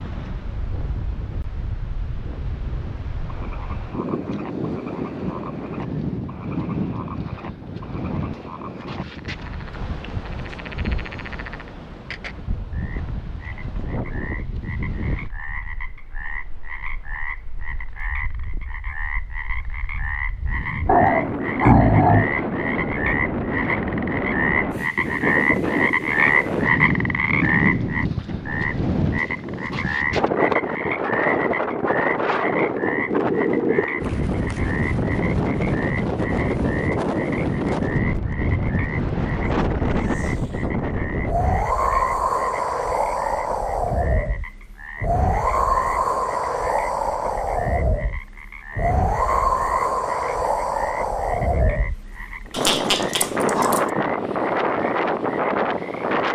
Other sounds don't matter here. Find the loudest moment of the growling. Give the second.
22 s.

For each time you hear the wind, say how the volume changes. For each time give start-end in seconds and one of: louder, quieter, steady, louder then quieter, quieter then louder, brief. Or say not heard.
0.0-56.3 louder.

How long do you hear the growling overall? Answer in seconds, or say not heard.
3 s.